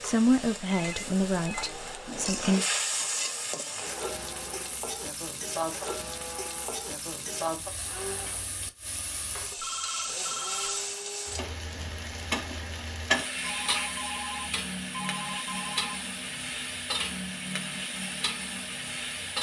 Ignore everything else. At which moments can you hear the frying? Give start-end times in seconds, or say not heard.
0.0-19.3.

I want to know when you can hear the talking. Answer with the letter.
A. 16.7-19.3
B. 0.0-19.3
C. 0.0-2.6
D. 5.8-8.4
C.